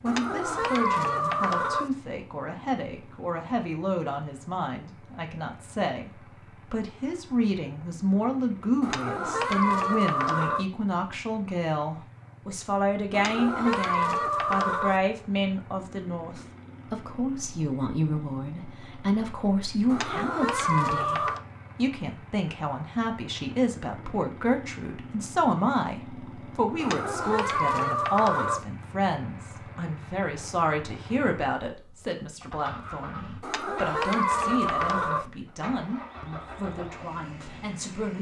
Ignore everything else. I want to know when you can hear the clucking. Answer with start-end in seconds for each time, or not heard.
0.1-1.9, 8.8-10.7, 13.1-14.9, 19.9-21.4, 26.8-28.6, 33.4-35.2.